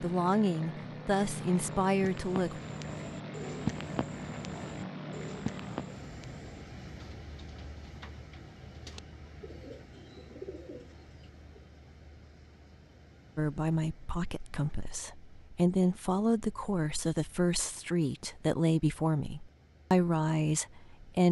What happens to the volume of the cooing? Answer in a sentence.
The volume of the cooing goes down, then up.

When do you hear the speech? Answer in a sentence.
You can hear the speech from 0.0 to 2.6 s and from 13.3 to 21.2 s.